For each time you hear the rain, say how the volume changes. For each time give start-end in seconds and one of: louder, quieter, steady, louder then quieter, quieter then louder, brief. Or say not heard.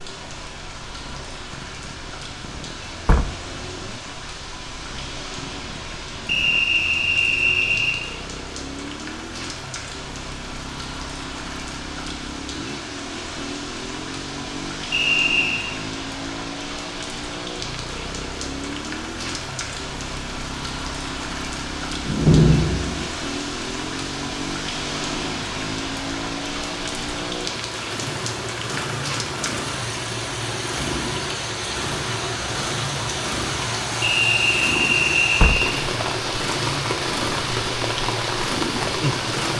0.0-39.5 louder.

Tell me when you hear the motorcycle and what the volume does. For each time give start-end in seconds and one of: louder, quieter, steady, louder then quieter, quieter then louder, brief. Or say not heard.
0.0-39.5 louder.